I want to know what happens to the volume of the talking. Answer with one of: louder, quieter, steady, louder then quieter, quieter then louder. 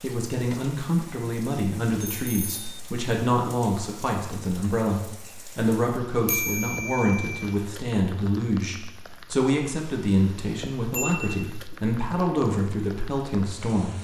steady.